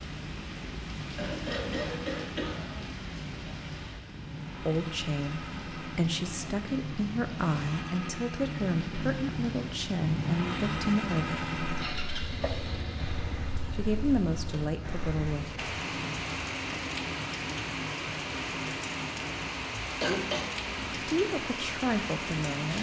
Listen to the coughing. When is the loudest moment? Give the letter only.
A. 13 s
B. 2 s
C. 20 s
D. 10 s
C.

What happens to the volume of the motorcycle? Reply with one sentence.
The loudness of the motorcycle goes up, then down.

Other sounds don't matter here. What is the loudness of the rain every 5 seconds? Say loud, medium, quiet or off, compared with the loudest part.
medium, medium, medium, loud, loud.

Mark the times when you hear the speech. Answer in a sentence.
You can hear the speech from 4.6 to 11.4 s, from 13.7 to 15.6 s and from 21.1 to 22.7 s.